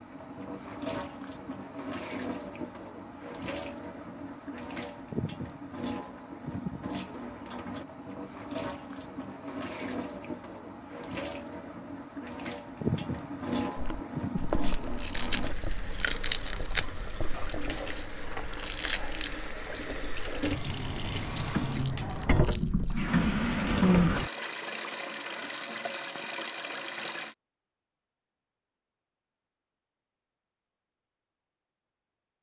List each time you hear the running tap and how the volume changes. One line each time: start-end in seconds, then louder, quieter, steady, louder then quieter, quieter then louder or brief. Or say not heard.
0.0-27.4 louder.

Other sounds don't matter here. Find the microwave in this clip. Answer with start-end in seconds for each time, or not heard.
not heard.